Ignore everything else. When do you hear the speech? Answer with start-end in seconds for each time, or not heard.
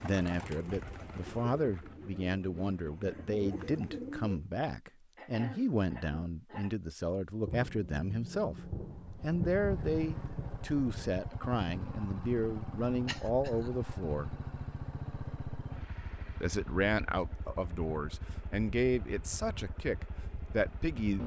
0.0-14.3, 16.4-21.2.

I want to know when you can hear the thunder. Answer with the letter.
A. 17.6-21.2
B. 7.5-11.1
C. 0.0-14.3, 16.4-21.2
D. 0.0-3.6
B.